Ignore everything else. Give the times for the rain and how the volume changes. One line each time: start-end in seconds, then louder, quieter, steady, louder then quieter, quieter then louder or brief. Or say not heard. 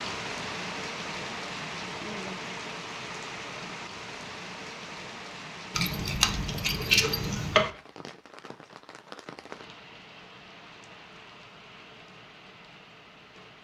0.0-13.5 quieter.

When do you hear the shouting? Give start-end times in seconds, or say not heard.
not heard.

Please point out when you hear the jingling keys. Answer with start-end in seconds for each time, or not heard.
5.7-7.7.